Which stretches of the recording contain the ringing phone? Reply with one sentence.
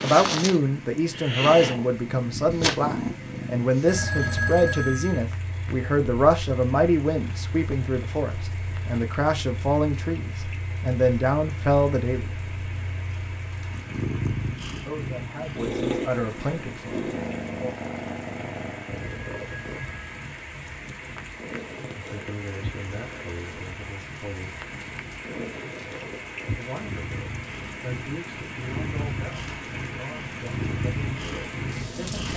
The ringing phone can be heard from 3.9 to 5.2 s and from 19.1 to 20.3 s.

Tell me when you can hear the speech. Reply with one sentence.
You can hear the speech from 0.0 to 12.2 s, from 14.8 to 17.8 s, from 21.9 to 24.6 s and from 26.6 to 32.3 s.